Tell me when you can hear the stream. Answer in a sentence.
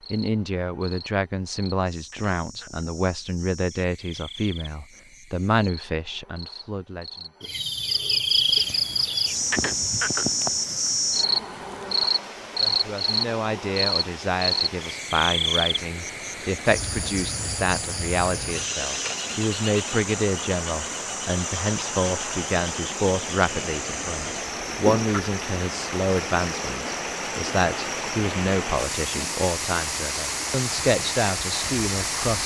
The stream can be heard from 8.2 to 32.4 s.